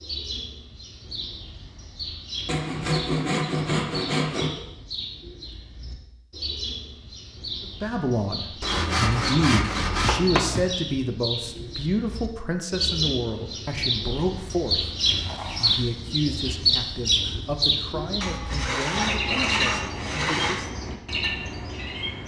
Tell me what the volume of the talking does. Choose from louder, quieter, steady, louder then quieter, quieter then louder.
quieter.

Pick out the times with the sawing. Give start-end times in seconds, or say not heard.
2.5-4.5, 8.6-10.7, 18.2-20.6.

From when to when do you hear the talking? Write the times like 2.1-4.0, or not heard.
7.8-15.0, 15.6-20.8.